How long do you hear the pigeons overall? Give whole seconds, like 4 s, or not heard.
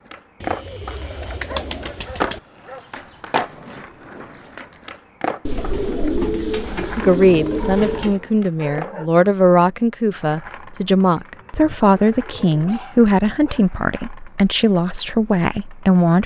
7 s.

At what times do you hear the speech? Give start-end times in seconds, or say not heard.
7.0-16.2.